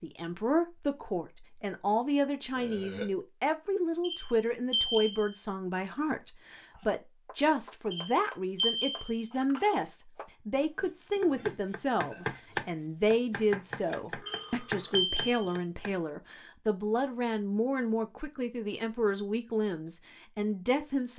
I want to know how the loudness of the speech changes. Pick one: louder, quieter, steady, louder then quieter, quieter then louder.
steady.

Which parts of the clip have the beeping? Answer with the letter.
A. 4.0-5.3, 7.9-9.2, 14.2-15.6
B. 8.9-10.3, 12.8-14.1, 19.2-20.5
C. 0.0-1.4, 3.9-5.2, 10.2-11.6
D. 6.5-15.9
A.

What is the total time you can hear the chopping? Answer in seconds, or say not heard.
9 s.